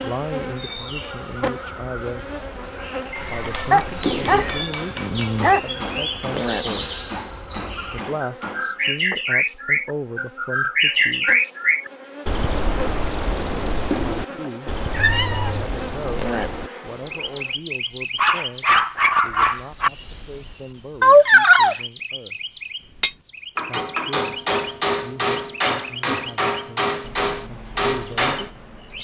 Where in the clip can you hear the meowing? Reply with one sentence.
The meowing can be heard from 3.1 to 4.8 s, from 14.9 to 15.7 s and from 21.0 to 21.8 s.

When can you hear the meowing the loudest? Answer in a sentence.
The loudest moment of the meowing is at 21 seconds.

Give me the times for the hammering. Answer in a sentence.
The hammering can be heard from 3.4 to 9.2 s and from 22.9 to 28.5 s.